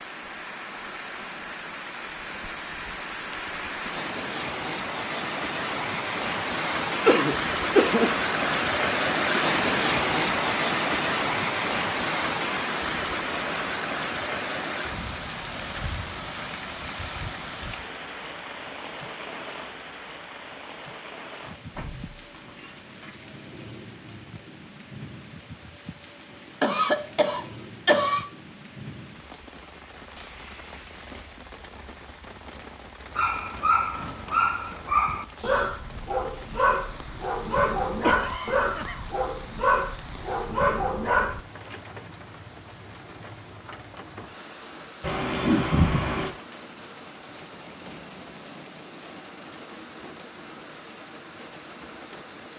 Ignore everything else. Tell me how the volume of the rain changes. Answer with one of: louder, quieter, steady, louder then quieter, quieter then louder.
quieter.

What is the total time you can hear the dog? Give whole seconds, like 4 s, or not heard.
8 s.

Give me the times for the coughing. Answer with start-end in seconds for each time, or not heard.
7.0-8.2, 26.6-28.2, 38.0-39.0.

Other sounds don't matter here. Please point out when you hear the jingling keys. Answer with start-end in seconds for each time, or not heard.
21.7-23.1, 45.0-46.3.